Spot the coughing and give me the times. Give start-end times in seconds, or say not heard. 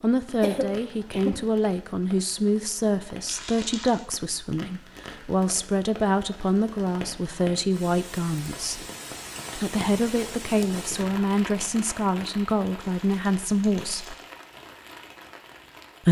0.4-1.4.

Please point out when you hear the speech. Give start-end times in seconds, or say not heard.
0.0-8.8, 9.6-14.2.